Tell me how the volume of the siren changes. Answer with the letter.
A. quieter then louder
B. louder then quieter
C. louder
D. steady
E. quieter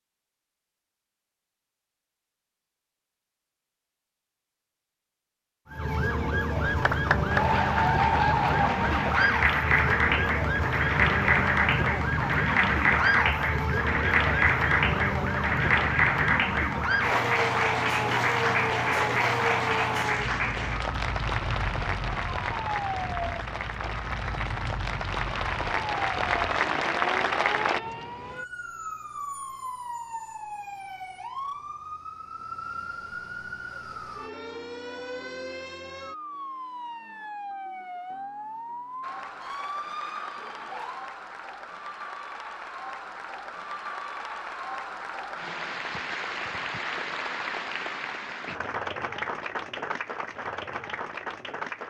E.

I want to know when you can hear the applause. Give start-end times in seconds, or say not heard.
6.6-27.8, 39.0-51.8.